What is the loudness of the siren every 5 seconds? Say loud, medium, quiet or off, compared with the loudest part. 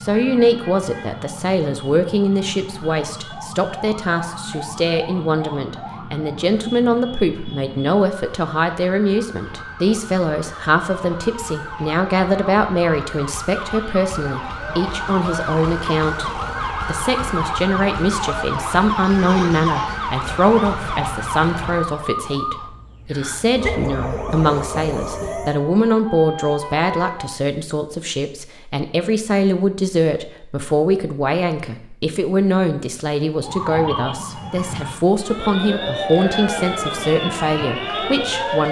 medium, medium, medium, loud, loud, medium, loud, loud.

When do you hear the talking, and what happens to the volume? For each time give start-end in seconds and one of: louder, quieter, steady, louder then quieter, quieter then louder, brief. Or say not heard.
0.0-38.6 steady.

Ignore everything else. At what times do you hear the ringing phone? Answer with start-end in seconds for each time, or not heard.
not heard.